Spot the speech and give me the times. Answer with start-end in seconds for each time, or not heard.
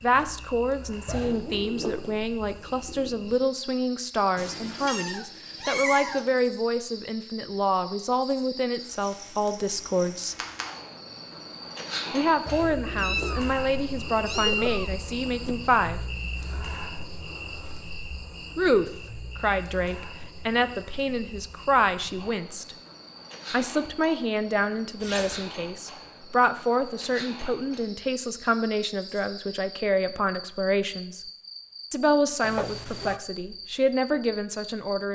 0.0-10.3, 12.1-16.0, 18.6-22.8, 23.5-31.2, 31.9-35.0.